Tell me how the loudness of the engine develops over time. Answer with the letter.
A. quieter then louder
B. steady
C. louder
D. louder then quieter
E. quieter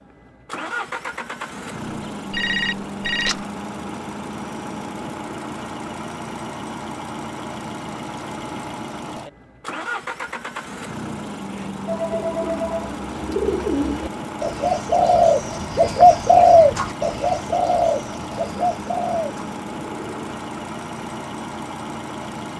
B.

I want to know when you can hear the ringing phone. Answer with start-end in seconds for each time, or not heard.
2.3-3.4, 11.8-13.4.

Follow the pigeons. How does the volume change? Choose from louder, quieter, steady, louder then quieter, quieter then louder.
louder then quieter.